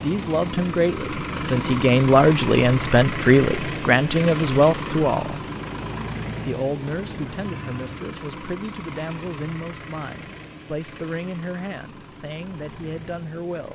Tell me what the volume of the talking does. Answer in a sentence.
The loudness of the talking goes down.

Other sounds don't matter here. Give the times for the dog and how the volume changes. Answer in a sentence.
The dog can't be heard in this clip.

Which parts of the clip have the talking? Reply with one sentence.
You can hear the talking from 0.0 to 5.4 s and from 6.5 to 13.7 s.